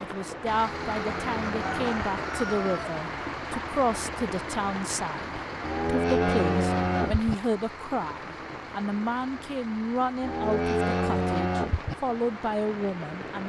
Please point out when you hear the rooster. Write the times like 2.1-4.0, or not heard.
1.5-3.0.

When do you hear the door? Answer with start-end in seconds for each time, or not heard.
not heard.